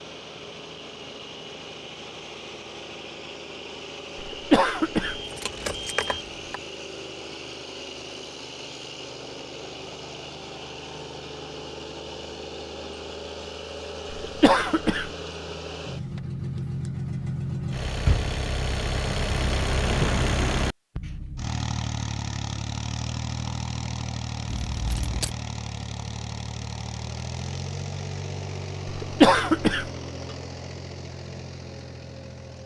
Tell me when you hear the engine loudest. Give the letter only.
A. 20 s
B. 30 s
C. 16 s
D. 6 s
A.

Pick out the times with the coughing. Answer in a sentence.
The coughing can be heard from 4.2 to 5.2 s, from 14.1 to 15.1 s and from 28.9 to 29.9 s.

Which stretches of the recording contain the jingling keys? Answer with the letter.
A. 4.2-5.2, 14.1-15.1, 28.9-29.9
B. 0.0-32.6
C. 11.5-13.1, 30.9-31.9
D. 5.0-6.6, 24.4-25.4
D.